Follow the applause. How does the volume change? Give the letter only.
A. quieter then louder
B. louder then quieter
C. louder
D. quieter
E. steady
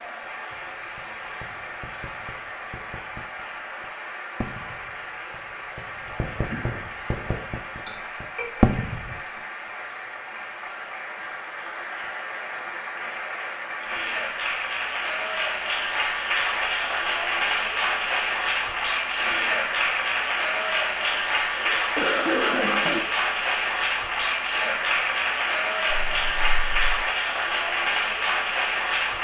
C.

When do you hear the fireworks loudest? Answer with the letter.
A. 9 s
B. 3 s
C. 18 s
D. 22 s
A.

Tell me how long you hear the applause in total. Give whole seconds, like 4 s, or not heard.
29 s.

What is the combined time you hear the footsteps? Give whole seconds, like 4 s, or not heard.
not heard.